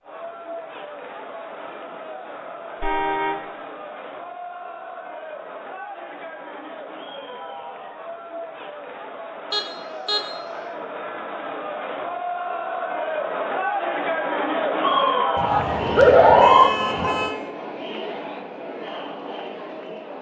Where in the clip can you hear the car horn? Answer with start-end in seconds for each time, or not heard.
2.8-3.5, 9.5-10.2, 15.3-17.4.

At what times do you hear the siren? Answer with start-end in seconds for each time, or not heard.
14.8-16.7.